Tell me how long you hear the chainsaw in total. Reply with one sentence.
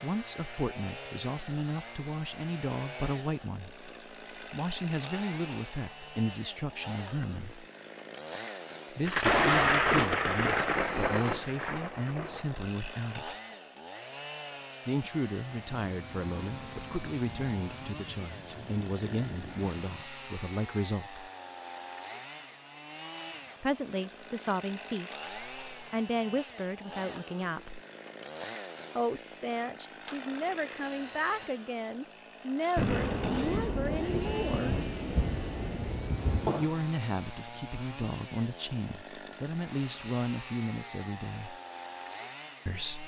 You can hear the chainsaw for 43 seconds altogether.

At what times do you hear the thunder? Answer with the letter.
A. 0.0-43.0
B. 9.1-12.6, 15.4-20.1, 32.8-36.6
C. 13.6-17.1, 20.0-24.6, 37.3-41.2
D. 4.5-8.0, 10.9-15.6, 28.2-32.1
B.